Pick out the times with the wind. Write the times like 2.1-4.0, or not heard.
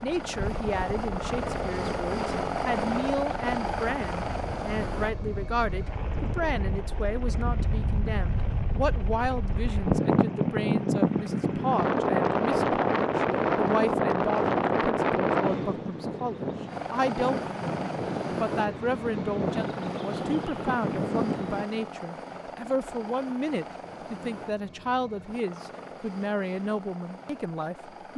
0.0-21.6.